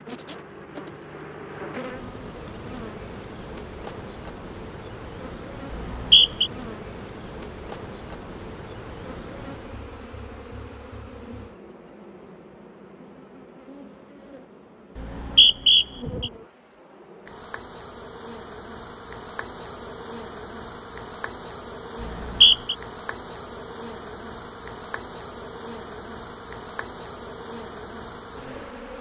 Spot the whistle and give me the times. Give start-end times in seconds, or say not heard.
5.7-6.5, 14.9-16.3, 22.0-22.8.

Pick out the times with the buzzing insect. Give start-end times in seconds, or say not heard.
0.0-28.9.